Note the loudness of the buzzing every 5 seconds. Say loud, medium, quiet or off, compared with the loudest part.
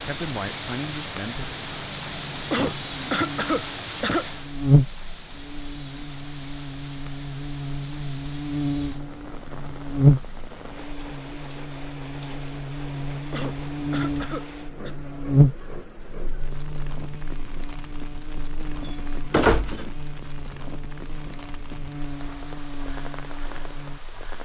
loud, medium, loud, loud, quiet.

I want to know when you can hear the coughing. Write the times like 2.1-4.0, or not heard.
2.5-4.2, 13.3-14.9.